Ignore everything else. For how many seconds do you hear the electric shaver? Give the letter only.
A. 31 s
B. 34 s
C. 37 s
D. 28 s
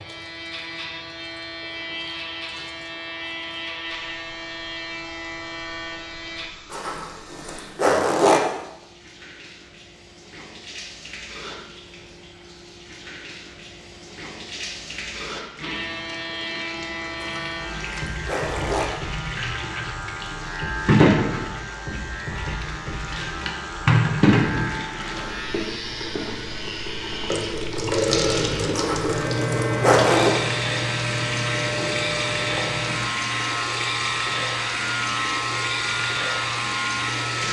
D.